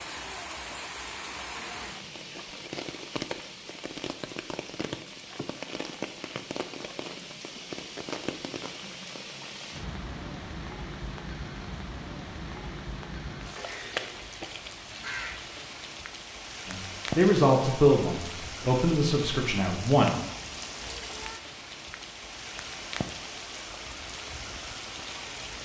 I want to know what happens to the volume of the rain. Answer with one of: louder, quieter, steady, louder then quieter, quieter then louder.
steady.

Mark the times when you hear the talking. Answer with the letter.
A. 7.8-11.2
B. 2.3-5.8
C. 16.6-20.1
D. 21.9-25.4
C.